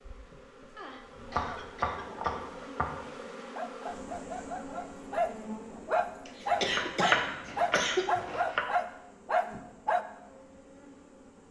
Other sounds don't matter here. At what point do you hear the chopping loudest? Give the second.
7 s.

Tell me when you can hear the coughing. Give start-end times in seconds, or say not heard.
0.8-2.5, 6.2-8.1.